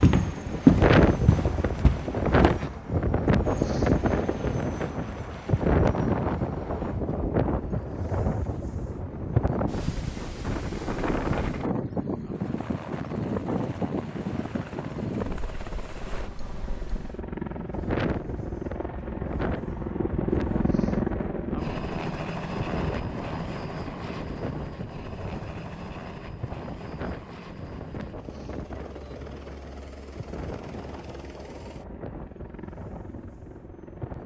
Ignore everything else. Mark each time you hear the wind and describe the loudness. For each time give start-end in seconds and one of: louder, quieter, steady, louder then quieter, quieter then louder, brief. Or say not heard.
0.1-34.2 quieter.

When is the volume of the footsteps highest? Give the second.
1 s.